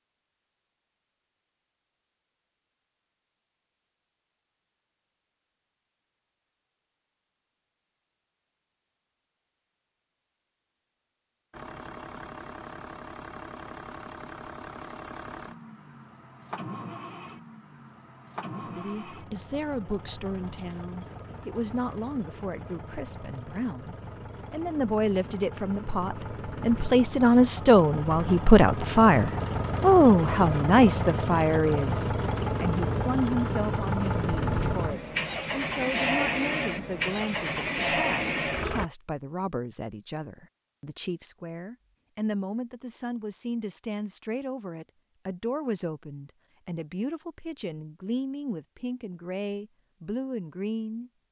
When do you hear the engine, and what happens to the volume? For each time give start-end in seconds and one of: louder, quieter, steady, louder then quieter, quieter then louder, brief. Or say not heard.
11.5-38.9 louder.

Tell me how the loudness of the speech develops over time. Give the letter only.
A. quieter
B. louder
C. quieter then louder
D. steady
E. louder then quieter
E.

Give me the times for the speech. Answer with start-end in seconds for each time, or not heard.
18.6-51.1.